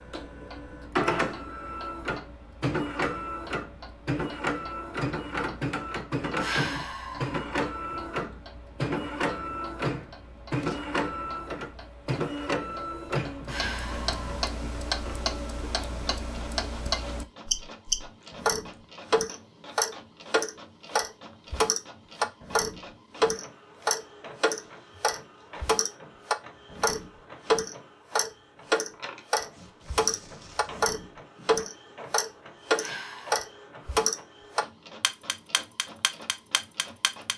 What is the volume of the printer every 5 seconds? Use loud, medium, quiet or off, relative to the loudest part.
loud, loud, loud, quiet, quiet, quiet, quiet, quiet.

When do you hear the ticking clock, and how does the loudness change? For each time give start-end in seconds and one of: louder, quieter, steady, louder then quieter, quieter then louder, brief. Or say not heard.
0.0-37.3 louder.